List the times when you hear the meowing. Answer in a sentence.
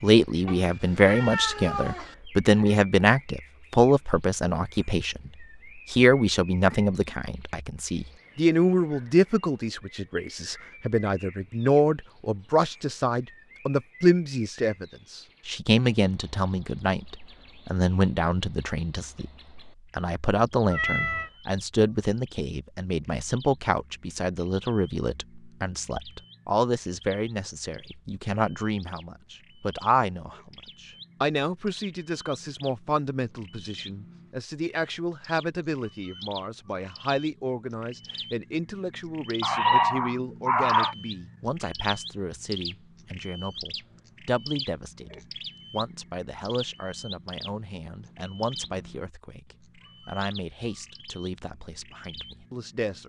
You can hear the meowing from 0.5 to 2.1 s, from 20.7 to 21.3 s and from 39.4 to 41.0 s.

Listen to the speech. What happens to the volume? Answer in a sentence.
The loudness of the speech goes down.